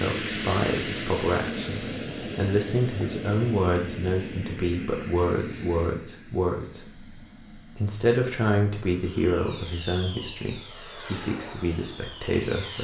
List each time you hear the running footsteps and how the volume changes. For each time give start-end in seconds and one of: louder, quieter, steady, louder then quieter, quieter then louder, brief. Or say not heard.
not heard.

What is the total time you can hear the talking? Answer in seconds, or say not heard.
13 s.